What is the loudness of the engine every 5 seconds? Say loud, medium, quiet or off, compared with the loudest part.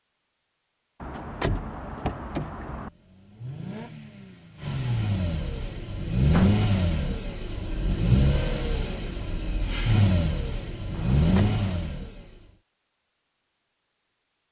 medium, loud, loud.